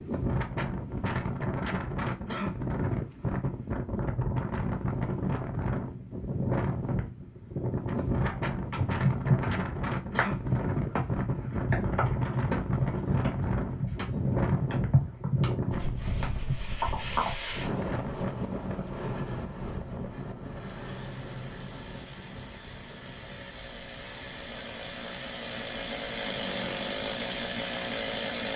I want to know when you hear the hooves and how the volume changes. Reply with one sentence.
The hooves can be heard from 8.2 to 17.3 s, at a steady volume.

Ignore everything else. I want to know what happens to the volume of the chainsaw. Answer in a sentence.
The loudness of the chainsaw goes up.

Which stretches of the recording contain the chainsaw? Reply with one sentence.
The chainsaw can be heard from 20.6 to 28.5 s.